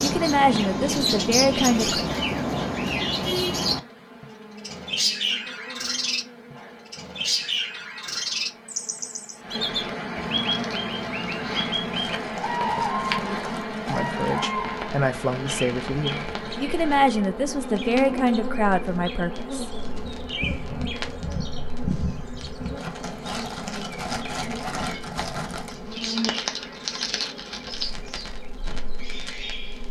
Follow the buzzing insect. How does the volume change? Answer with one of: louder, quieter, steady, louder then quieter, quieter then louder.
louder then quieter.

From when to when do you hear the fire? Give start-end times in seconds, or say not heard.
10.4-29.8.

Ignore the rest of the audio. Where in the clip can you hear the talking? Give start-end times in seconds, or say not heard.
0.0-2.0, 13.9-19.7.